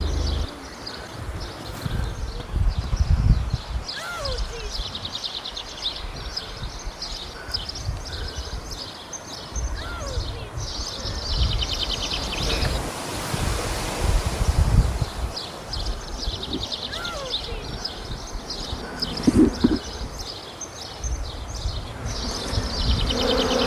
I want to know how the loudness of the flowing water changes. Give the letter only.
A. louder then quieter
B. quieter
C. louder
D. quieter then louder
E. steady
A.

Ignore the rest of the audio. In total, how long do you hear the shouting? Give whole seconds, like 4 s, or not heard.
3 s.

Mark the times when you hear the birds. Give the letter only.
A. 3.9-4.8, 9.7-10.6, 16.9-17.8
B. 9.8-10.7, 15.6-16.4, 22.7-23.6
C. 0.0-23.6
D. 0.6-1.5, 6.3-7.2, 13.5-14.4
C.